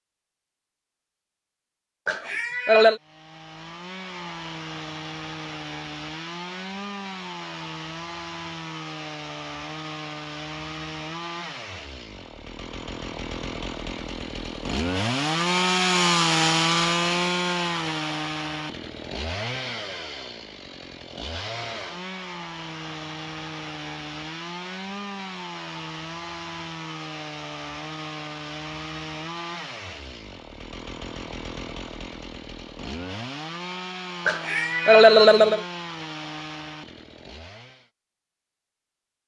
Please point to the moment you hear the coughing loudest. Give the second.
35 s.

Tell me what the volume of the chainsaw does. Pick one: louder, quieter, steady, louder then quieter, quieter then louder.
louder then quieter.